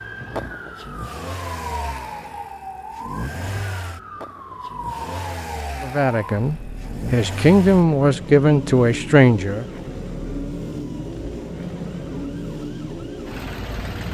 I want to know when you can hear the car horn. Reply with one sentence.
The car horn can't be heard in this clip.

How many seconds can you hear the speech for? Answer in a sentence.
The speech can be heard for 4 seconds in total.